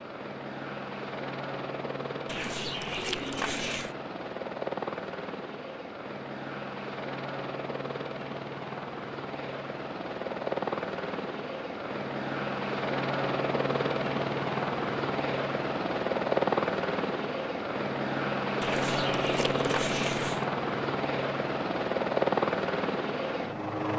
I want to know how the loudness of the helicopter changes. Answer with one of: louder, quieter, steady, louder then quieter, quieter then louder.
louder.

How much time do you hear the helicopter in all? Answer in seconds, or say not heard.
24 s.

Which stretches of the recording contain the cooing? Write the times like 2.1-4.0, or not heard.
2.2-4.0, 18.6-20.4.